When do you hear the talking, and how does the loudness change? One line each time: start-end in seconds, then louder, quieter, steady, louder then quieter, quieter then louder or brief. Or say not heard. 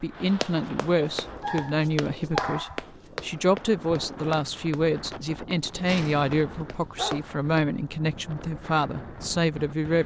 0.0-10.0 steady.